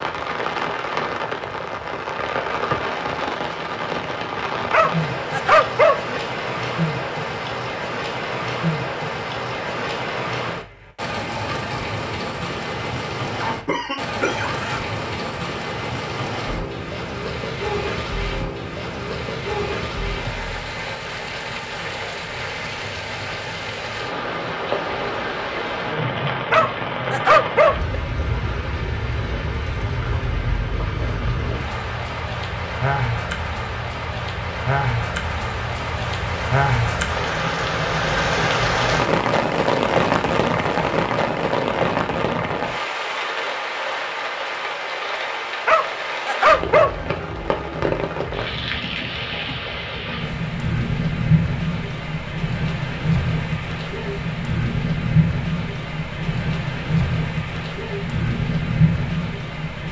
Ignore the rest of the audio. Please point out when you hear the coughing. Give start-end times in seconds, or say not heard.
13.4-14.8.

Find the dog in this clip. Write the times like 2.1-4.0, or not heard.
4.7-6.2, 26.5-27.9, 45.6-47.1.